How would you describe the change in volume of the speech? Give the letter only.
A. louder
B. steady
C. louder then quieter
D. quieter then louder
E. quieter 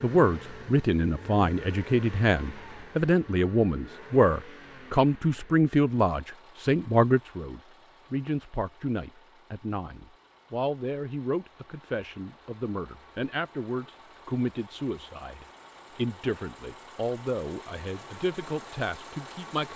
E.